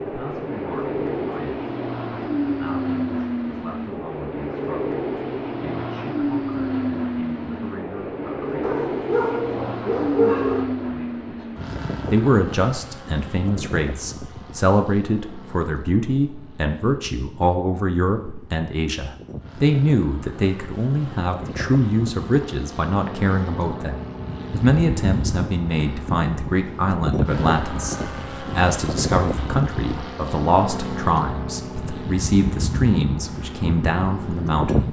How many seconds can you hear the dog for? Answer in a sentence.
The dog can be heard for 2 seconds in total.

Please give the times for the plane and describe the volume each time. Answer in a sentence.
You can hear the plane from 0.0 to 34.8 s, getting quieter then louder.